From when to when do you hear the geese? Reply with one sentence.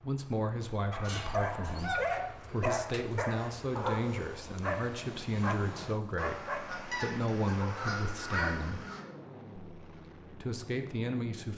You can hear the geese from 6.2 to 9.1 s.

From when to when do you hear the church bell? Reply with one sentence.
You can't hear the church bell here.